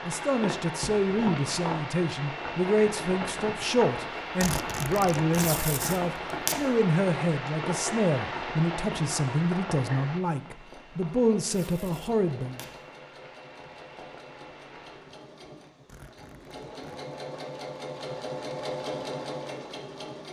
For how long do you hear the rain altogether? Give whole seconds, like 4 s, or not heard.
15 s.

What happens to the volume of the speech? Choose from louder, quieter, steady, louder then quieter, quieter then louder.
steady.